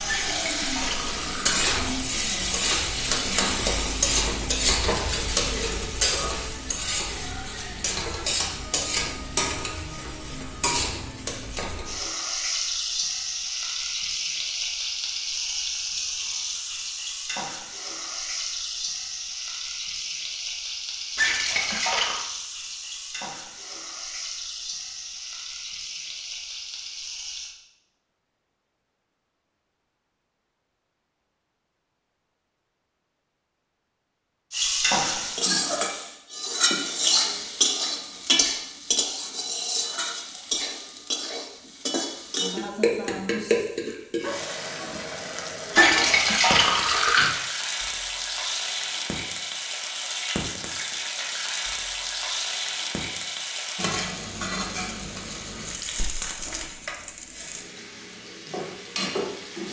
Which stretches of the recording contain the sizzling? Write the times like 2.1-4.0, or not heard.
0.0-27.6, 34.5-59.6.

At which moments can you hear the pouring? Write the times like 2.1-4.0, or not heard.
0.1-1.7, 21.1-22.2, 45.7-47.3.